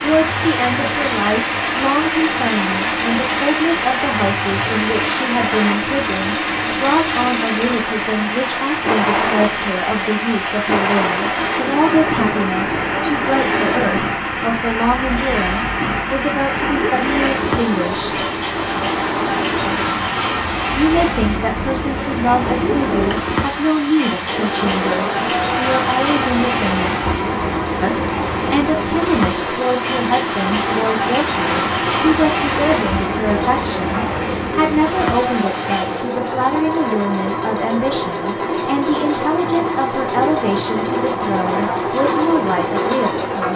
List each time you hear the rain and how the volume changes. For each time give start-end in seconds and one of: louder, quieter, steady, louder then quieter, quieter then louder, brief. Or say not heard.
0.0-36.0 steady.